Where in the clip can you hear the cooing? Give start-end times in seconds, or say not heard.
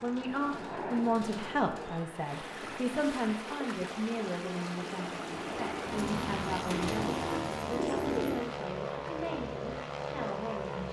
0.0-2.0, 5.9-8.4.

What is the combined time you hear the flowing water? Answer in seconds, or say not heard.
9 s.